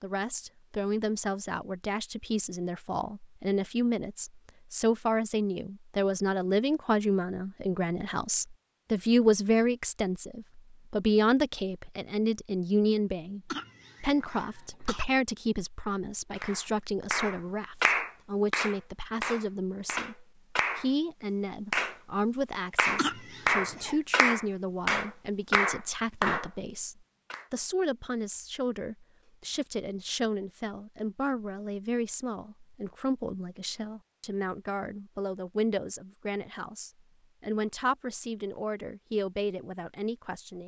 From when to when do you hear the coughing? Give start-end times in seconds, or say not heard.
13.5-15.1, 22.9-24.0.